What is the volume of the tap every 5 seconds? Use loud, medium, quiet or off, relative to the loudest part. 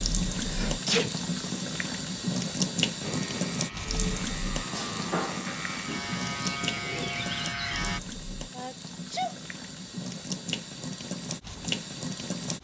loud, medium, loud.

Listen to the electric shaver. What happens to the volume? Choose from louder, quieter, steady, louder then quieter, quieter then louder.
louder.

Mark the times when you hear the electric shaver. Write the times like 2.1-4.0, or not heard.
3.0-8.0.